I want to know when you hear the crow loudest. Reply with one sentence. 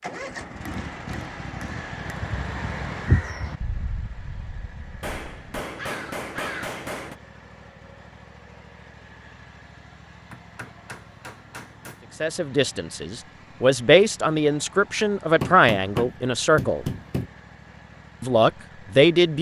The loudest moment of the crow is at 3 seconds.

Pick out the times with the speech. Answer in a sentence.
The speech can be heard from 12.2 to 16.9 s and from 18.2 to 19.3 s.